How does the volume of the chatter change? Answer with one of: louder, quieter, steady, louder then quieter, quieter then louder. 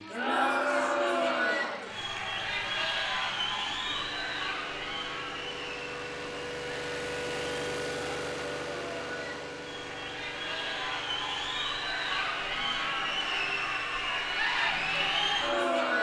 quieter then louder.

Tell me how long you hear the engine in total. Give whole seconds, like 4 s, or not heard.
16 s.